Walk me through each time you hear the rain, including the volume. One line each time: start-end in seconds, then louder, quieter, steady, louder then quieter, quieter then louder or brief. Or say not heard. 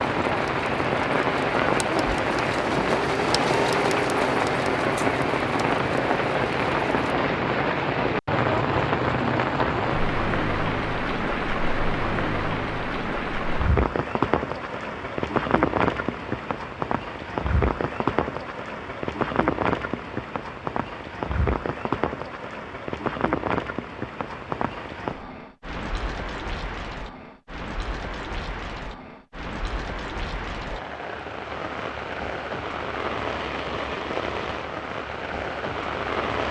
0.0-36.4 quieter.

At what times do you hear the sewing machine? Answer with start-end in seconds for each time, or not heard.
0.0-7.2.